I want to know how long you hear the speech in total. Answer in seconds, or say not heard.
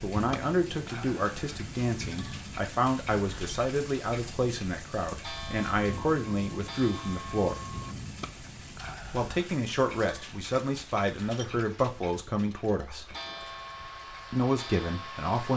13 s.